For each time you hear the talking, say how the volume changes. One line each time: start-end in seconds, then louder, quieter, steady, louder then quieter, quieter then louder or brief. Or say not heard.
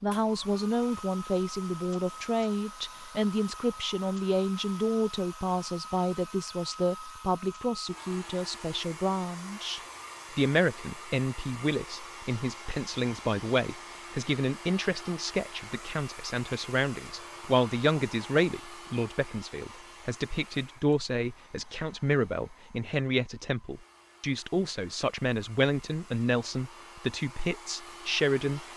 0.0-28.7 steady.